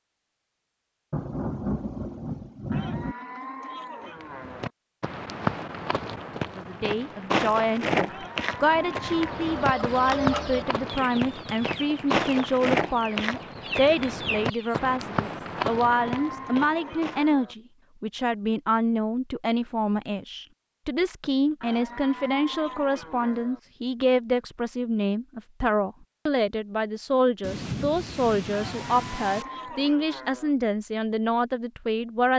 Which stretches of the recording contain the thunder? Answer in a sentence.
You can hear the thunder from 1.1 to 3.1 s and from 27.4 to 29.4 s.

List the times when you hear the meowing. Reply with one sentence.
The meowing can't be heard in this clip.